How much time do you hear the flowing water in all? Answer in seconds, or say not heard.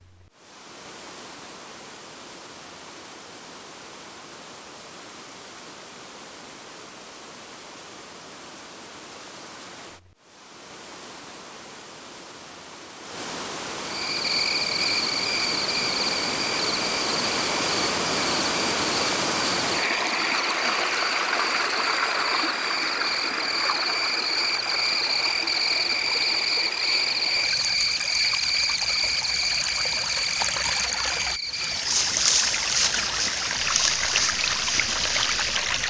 36 s.